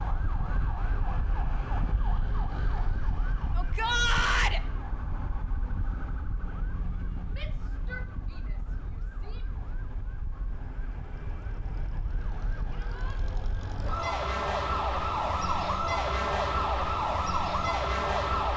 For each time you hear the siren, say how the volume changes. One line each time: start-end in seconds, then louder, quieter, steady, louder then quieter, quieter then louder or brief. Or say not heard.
0.0-18.5 quieter then louder.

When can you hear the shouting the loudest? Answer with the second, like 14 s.
4 s.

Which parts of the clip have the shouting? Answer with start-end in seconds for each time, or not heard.
3.5-4.6, 7.3-9.7, 12.7-13.2.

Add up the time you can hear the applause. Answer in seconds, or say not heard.
not heard.